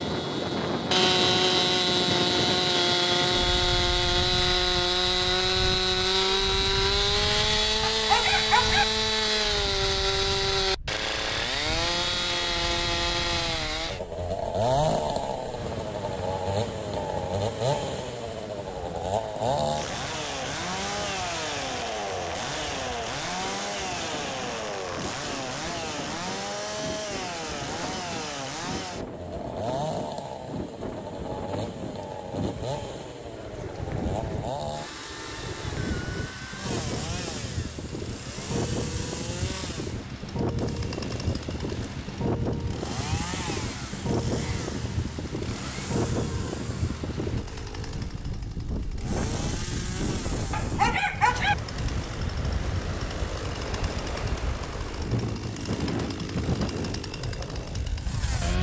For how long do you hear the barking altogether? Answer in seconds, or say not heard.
2 s.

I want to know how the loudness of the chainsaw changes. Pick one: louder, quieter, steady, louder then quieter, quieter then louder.
quieter.